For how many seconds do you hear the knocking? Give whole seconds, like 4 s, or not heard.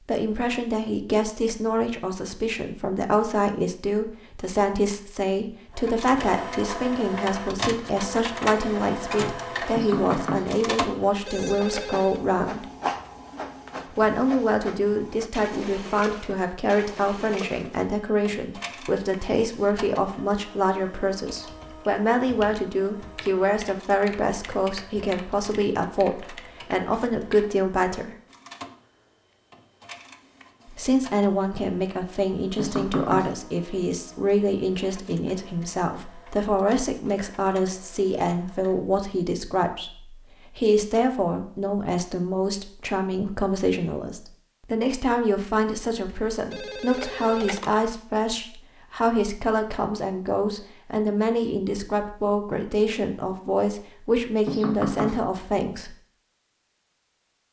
2 s.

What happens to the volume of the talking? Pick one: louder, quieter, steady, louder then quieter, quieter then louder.
steady.